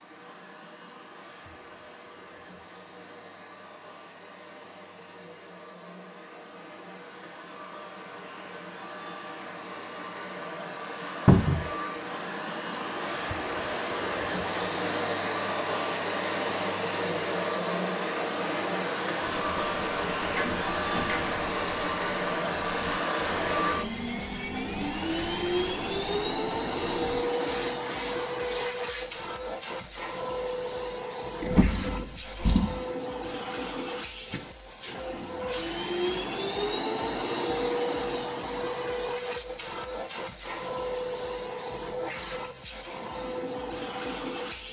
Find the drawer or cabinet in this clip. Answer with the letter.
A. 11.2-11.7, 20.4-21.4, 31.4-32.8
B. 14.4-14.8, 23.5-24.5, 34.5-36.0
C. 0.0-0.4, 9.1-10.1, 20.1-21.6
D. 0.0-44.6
A.